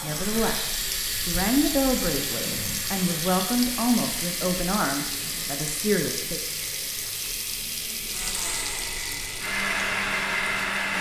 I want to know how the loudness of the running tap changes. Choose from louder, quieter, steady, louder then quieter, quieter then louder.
quieter.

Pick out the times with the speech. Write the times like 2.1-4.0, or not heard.
0.0-6.4.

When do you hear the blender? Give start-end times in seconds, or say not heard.
8.1-10.9.